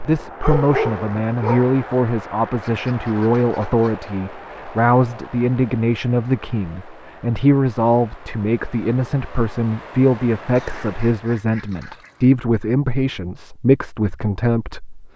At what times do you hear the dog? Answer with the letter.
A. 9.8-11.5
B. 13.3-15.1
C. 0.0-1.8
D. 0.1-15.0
C.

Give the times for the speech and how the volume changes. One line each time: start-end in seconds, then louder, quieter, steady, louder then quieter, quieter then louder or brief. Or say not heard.
0.1-15.0 steady.